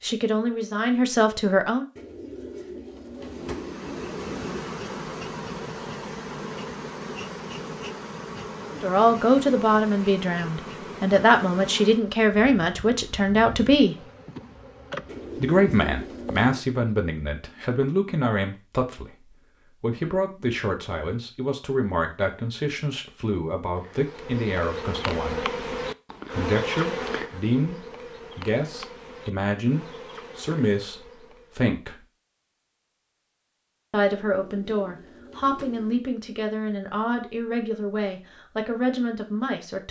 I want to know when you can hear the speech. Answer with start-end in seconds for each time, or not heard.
0.0-1.9, 8.8-13.9, 15.3-25.4, 26.3-32.0, 33.9-39.8.